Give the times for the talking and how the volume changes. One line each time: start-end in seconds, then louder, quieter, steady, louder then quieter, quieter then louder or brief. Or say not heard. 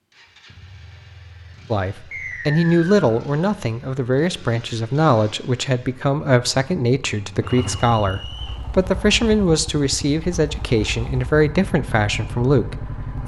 1.7-13.2 steady.